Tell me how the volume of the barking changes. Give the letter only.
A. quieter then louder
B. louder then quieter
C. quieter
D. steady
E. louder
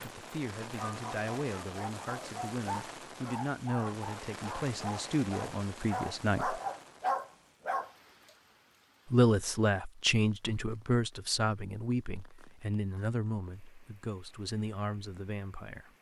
E.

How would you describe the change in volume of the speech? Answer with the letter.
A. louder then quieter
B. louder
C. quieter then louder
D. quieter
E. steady
A.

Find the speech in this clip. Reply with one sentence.
The speech can be heard from 0.0 to 6.6 s and from 9.1 to 15.9 s.